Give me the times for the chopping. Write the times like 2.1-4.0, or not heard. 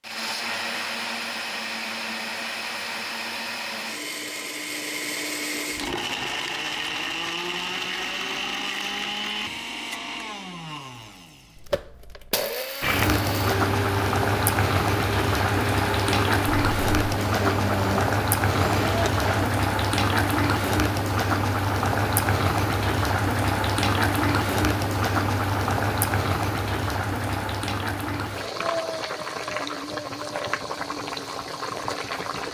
not heard.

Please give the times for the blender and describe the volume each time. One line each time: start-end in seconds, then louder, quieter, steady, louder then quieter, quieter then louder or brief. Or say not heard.
0.0-19.5 steady.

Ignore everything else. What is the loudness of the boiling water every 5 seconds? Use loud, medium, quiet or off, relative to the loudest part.
off, off, loud, loud, loud, loud, medium.